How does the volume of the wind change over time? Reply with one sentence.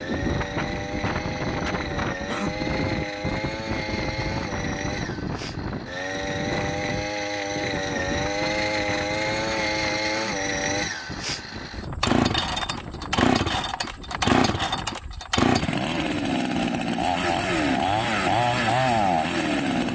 The loudness of the wind goes down.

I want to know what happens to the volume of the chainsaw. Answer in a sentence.
The loudness of the chainsaw goes up.